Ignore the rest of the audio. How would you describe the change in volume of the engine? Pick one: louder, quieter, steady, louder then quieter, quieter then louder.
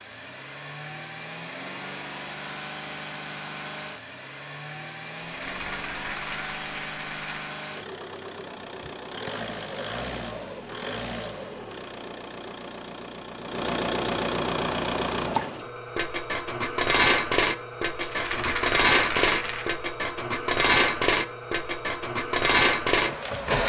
louder.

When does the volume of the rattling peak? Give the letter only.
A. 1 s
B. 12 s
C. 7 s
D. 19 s
D.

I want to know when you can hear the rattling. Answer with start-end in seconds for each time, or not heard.
5.2-7.3, 18.0-19.7.